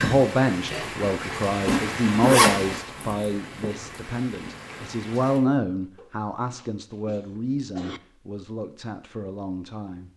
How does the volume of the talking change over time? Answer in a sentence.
The loudness of the talking goes down.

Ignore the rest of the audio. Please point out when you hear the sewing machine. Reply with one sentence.
The sewing machine can't be heard in this clip.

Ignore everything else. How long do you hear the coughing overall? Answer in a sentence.
The coughing can be heard for 2 seconds in total.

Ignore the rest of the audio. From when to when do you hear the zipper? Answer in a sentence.
The zipper can be heard from 1.6 to 3.7 s.